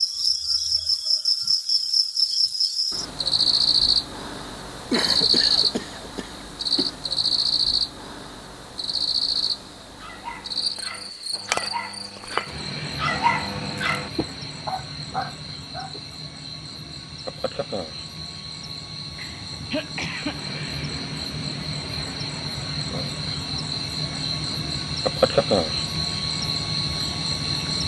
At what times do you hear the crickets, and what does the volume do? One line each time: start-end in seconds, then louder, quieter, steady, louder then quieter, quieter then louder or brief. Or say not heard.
0.0-27.8 quieter then louder.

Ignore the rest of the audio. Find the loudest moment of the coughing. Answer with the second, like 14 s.
5 s.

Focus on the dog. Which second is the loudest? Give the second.
13 s.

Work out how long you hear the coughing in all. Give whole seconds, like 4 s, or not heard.
3 s.